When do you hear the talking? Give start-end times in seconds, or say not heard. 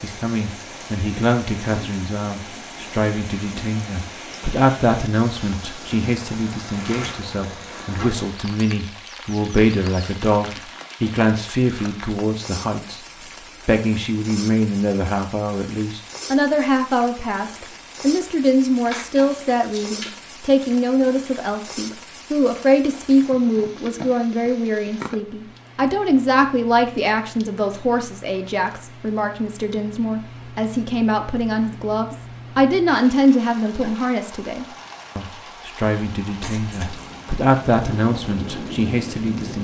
0.0-13.0, 13.7-39.5.